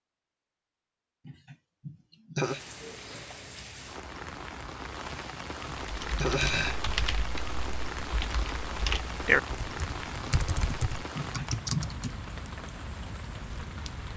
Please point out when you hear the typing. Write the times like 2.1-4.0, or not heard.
5.7-12.2.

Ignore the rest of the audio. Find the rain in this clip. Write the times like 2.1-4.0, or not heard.
2.4-14.1.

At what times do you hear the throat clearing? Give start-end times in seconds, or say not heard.
1.2-2.6, 5.0-6.8, 11.2-11.9.